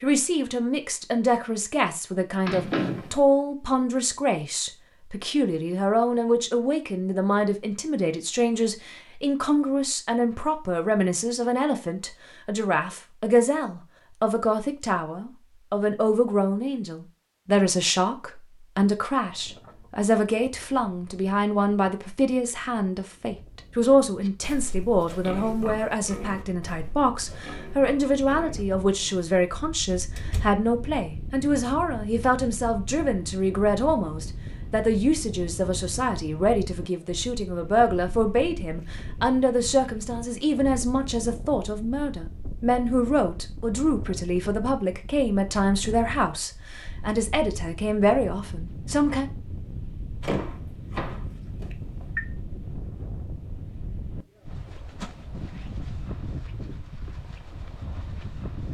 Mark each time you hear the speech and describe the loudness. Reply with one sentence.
The speech can be heard from 0.0 to 49.2 s, at a steady volume.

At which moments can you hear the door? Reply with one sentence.
You can hear the door from 2.5 to 3.1 s, from 30.1 to 30.6 s and from 50.2 to 52.2 s.